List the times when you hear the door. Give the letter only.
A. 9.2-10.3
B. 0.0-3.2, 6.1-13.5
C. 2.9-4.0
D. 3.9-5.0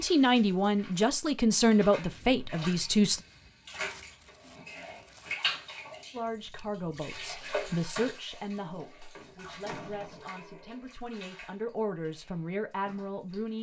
A.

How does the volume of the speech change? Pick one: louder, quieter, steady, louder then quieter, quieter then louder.
quieter then louder.